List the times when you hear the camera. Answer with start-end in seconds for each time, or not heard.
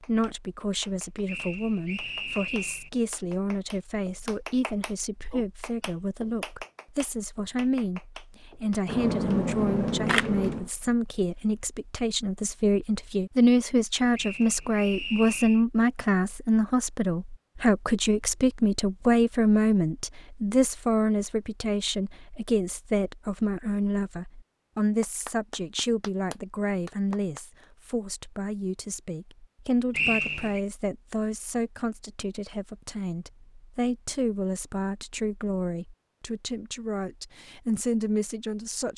8.8-10.7.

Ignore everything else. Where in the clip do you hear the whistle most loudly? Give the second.
30 s.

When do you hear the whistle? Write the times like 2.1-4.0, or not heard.
1.2-2.9, 14.1-15.7, 29.9-30.6.